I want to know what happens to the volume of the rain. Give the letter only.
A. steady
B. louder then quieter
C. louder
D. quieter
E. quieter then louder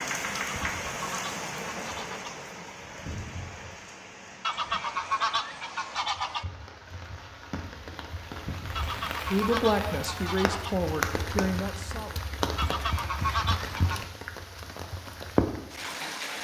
E.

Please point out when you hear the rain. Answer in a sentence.
You can hear the rain from 0.0 to 16.3 s.